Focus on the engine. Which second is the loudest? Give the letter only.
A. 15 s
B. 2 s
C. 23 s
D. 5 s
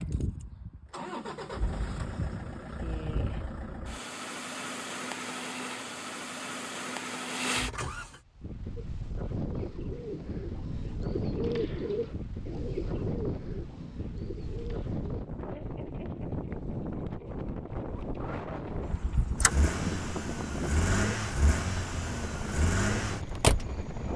C.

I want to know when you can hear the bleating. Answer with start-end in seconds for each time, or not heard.
not heard.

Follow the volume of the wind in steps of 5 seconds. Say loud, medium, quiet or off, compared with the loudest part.
off, loud, loud, loud, loud.